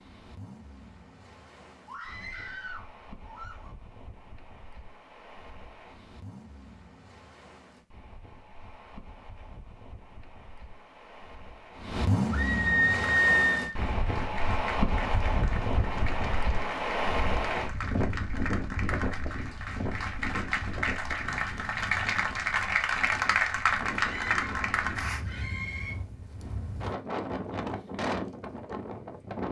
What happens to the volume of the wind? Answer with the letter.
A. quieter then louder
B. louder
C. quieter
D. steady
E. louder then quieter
E.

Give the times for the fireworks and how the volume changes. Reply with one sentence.
You can't hear the fireworks here.